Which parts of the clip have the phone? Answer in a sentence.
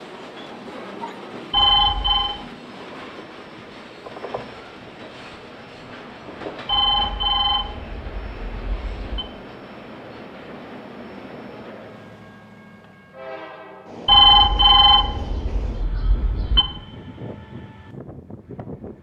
You can hear the phone from 1.5 to 2.4 s, from 6.7 to 9.2 s and from 14.1 to 16.6 s.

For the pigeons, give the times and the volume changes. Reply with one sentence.
The pigeons can't be heard in this clip.